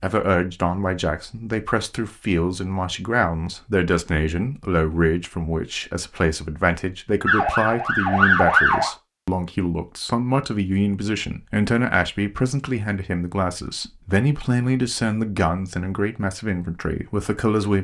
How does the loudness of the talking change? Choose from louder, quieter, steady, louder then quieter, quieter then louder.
steady.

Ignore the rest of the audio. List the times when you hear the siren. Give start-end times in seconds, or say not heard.
7.2-8.9.